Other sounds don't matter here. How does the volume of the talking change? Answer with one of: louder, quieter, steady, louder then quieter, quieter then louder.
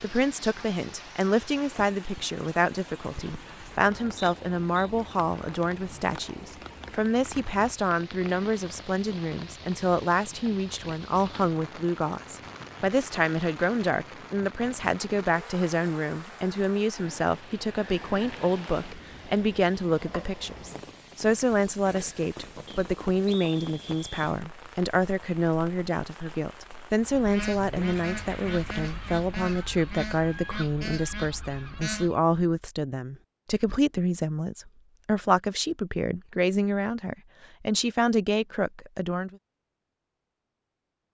steady.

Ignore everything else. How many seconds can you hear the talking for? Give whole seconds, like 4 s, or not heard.
39 s.